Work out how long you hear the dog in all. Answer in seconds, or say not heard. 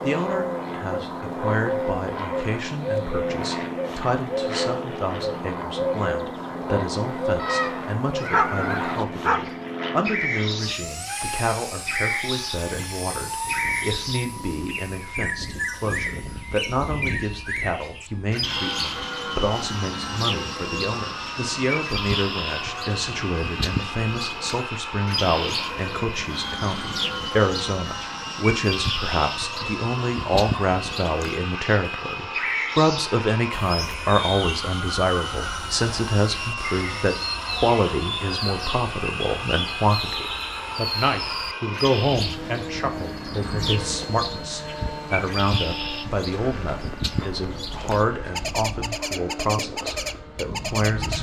2 s.